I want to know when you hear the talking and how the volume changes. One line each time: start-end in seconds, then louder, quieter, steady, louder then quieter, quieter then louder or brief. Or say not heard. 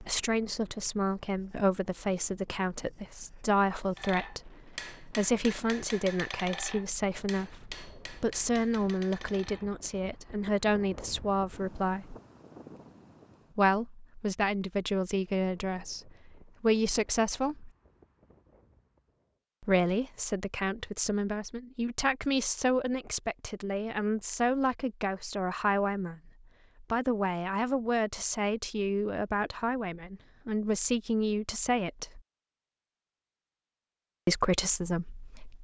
0.0-12.2 steady
13.6-17.7 quieter then louder
19.6-32.2 steady
34.2-35.5 brief.